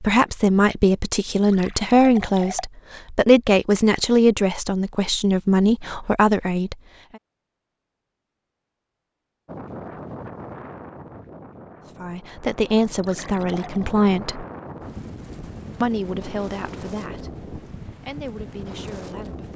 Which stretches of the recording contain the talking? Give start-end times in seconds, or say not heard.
0.0-6.8, 12.0-14.4, 15.8-19.5.